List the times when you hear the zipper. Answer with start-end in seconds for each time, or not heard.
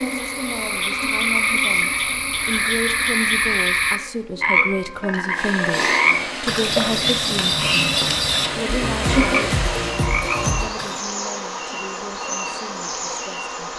not heard.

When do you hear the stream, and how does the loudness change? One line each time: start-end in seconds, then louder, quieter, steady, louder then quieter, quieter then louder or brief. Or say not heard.
5.3-13.7 quieter.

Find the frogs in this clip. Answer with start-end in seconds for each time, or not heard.
0.0-11.0.